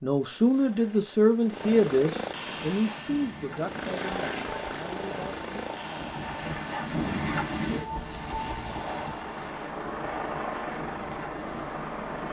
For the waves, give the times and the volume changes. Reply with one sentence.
You can hear the waves from 2.5 to 12.2 s, getting louder then quieter.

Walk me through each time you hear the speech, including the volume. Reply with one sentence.
You can hear the speech from 0.0 to 5.5 s, getting quieter.